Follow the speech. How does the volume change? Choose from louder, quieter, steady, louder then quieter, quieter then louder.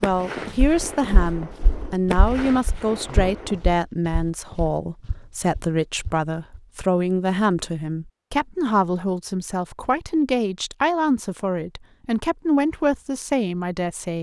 steady.